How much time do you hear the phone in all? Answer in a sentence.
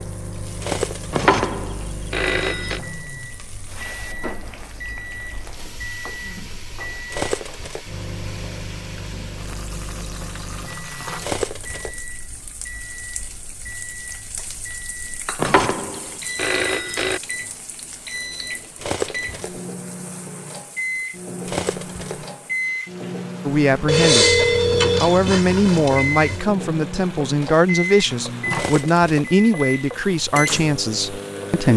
The phone can be heard for 6 seconds in total.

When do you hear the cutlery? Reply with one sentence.
You can hear the cutlery from 0.6 to 1.1 s, from 7.1 to 7.9 s, from 11.2 to 12.0 s, from 18.8 to 19.6 s, from 21.4 to 22.2 s and from 28.5 to 29.4 s.